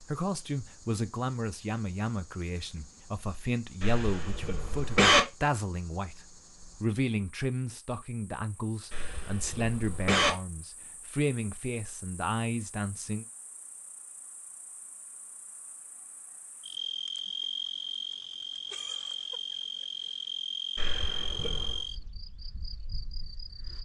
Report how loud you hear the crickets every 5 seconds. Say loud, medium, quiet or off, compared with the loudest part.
quiet, quiet, quiet, loud, loud.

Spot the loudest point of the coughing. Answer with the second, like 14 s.
5 s.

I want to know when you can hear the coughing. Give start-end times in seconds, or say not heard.
3.8-5.2, 8.9-10.3, 20.8-21.9.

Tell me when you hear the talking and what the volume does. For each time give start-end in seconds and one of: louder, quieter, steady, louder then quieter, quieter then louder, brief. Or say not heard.
0.0-13.2 steady.